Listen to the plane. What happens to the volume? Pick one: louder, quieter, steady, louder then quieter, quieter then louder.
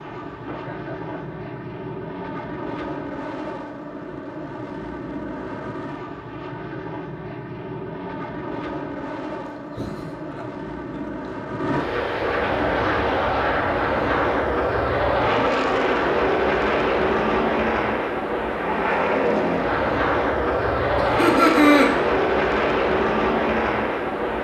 louder.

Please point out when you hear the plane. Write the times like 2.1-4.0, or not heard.
0.0-24.3.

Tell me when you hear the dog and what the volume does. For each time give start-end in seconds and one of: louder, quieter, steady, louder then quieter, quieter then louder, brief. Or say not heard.
not heard.